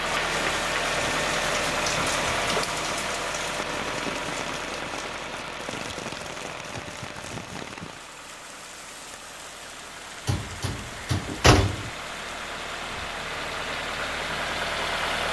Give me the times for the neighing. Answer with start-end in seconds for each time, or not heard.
not heard.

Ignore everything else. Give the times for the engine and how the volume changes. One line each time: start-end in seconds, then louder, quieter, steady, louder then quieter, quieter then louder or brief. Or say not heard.
0.0-15.2 quieter then louder.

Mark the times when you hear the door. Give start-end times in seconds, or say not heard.
10.2-11.9.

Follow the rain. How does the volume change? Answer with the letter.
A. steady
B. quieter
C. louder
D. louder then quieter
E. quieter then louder
B.